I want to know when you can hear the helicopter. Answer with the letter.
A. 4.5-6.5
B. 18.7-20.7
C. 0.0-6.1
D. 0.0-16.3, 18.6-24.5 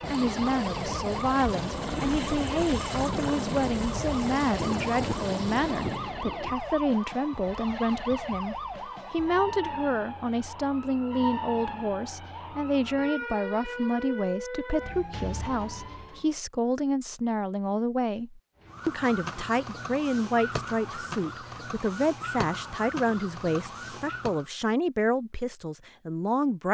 C.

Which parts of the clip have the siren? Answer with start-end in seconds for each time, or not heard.
0.0-16.3, 18.6-24.5.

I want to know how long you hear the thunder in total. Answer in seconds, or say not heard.
2 s.